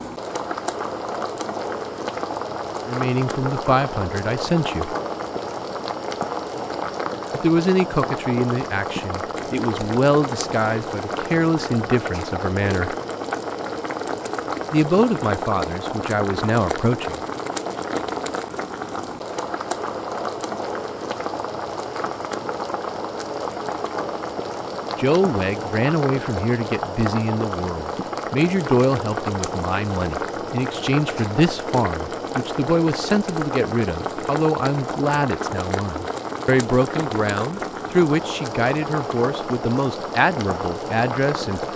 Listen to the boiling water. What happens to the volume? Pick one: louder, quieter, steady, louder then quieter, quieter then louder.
steady.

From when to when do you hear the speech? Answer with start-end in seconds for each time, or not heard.
2.9-5.0, 7.3-12.9, 14.7-17.2, 24.9-41.7.